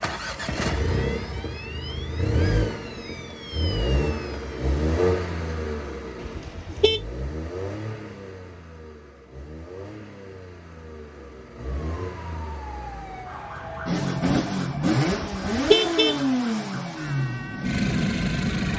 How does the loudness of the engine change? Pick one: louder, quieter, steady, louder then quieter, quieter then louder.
quieter then louder.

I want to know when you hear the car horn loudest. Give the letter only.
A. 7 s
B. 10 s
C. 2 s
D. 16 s
D.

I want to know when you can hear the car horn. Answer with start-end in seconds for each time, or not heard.
6.2-7.0, 15.1-16.2.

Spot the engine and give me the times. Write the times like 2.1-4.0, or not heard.
0.0-18.7.